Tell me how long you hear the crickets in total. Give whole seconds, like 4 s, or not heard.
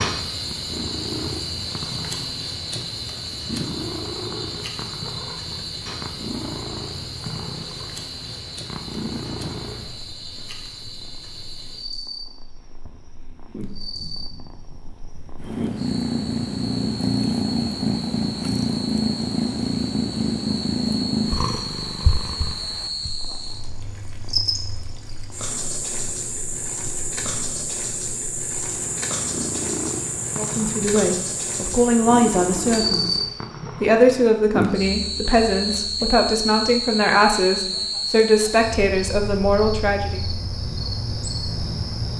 40 s.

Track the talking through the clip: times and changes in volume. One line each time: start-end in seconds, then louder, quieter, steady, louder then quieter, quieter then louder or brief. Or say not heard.
30.4-33.2 brief
33.8-40.2 steady.